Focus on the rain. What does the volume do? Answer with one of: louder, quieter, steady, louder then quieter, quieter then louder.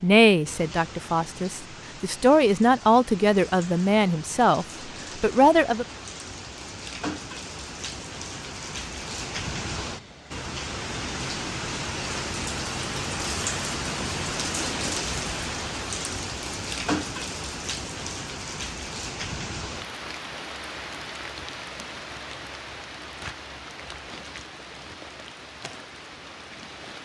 louder then quieter.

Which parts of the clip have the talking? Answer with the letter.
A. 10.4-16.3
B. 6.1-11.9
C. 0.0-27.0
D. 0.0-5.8
D.